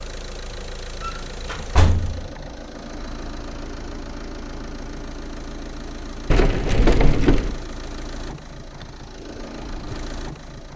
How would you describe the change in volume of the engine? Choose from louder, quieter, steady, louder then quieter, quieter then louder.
steady.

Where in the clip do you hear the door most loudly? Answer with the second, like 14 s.
7 s.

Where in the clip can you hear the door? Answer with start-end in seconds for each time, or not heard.
1.0-2.3, 6.3-7.6.